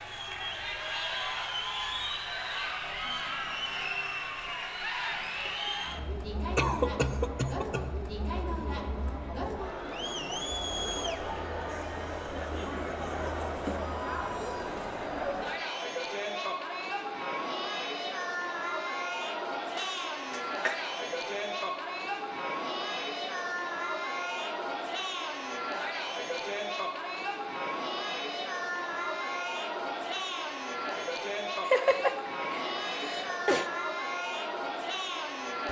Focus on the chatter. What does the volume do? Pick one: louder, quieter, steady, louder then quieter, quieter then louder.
steady.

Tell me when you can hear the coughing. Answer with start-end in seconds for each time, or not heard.
6.5-7.9, 19.8-20.8, 31.6-33.7.